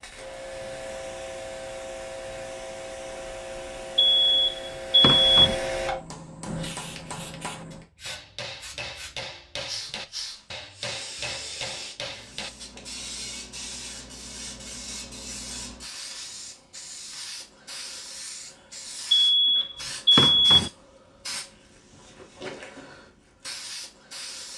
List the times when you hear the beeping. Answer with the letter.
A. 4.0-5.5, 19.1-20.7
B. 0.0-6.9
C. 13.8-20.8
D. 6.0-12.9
A.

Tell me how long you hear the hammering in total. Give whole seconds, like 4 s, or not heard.
7 s.